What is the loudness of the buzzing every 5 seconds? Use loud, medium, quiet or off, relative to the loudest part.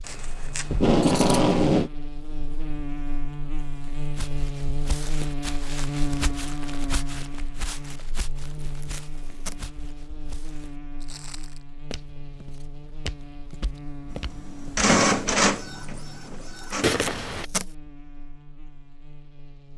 loud, loud, medium, quiet.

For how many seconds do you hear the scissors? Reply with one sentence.
You can hear the scissors for 2 seconds altogether.